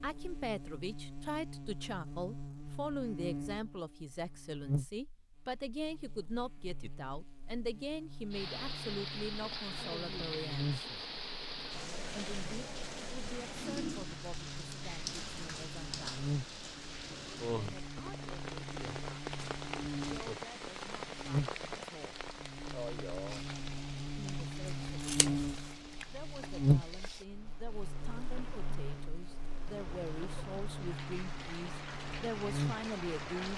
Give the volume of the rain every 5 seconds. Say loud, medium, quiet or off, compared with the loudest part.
off, loud, loud, loud, loud, medium, loud.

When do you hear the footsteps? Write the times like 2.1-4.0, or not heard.
not heard.